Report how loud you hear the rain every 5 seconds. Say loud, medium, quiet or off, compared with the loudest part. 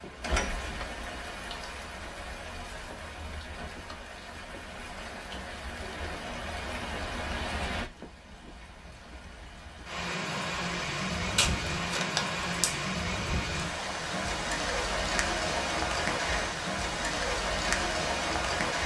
medium, medium, loud, loud.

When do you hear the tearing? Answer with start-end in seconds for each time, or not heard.
11.3-12.8.